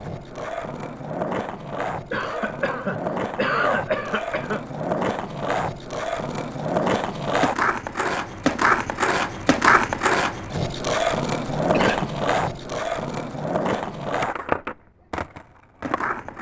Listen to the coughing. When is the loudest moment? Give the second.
4 s.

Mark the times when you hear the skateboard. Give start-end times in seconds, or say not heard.
0.0-16.3.